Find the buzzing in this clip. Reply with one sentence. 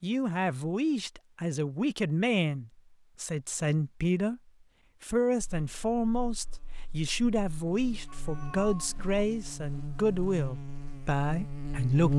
The buzzing can be heard from 5.4 to 12.1 s.